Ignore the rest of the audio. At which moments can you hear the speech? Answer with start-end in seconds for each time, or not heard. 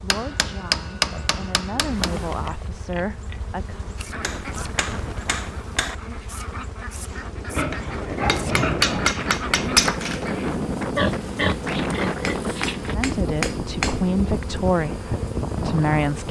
0.0-3.8, 12.8-16.2.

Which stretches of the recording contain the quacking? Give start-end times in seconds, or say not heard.
4.0-10.6.